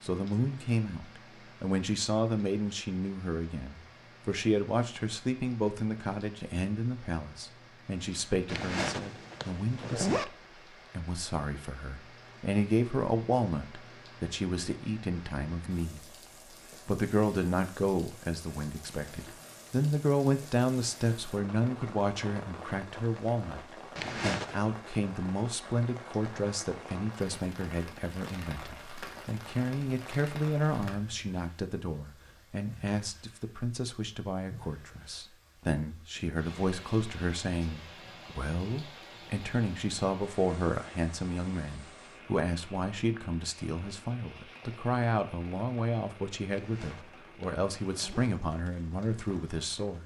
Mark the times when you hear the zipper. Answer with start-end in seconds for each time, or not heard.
8.4-10.2, 23.9-24.6, 46.5-48.3.